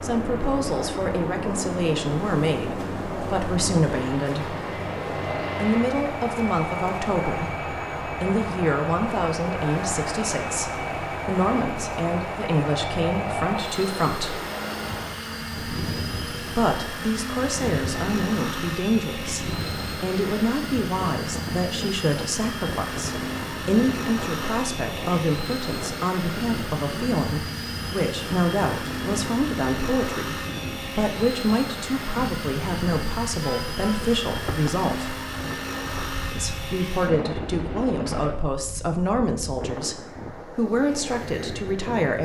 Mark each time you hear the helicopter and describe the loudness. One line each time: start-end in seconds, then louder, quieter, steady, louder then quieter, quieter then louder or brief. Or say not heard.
0.0-38.4 steady.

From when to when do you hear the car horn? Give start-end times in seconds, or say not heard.
33.4-34.0.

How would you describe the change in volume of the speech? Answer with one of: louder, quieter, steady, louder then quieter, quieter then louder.
steady.